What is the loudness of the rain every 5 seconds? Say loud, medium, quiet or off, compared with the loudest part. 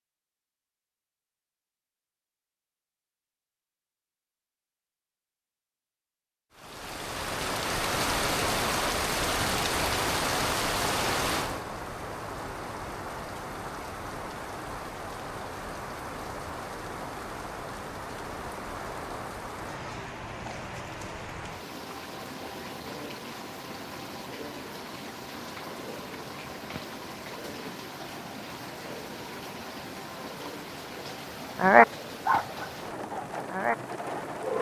off, loud, loud, medium, medium, medium, medium.